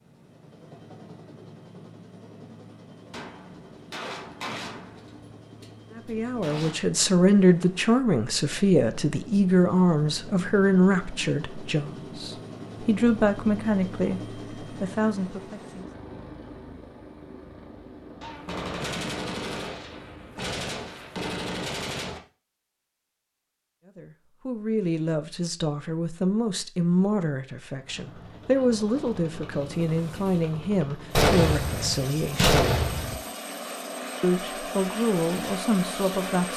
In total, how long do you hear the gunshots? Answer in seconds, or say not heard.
10 s.